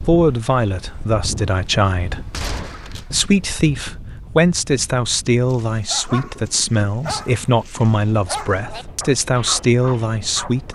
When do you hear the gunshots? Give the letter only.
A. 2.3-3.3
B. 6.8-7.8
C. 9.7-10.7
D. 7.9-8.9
A.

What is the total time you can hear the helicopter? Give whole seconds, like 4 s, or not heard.
not heard.